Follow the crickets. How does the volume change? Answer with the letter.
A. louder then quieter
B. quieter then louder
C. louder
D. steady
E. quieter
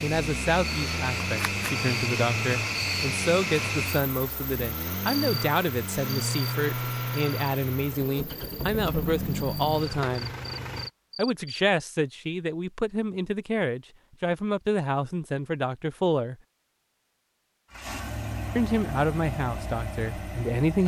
B.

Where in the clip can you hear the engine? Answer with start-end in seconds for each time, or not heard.
0.0-10.9, 17.7-20.8.